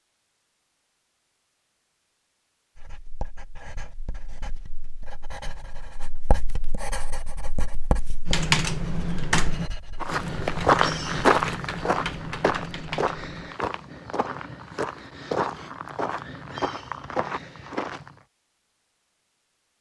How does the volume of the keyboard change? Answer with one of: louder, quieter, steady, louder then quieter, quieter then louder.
quieter.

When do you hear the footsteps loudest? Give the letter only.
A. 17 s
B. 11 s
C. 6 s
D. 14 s
B.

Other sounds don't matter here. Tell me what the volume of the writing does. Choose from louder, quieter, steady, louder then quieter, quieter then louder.
louder then quieter.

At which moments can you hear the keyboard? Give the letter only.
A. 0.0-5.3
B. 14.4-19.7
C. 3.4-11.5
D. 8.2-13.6
D.